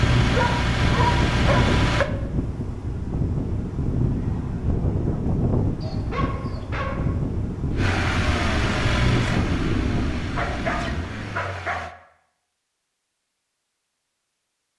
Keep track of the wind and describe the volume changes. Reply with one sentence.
The volume of the wind stays about the same.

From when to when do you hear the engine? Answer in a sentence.
You can hear the engine from 0.0 to 2.1 s and from 7.8 to 11.9 s.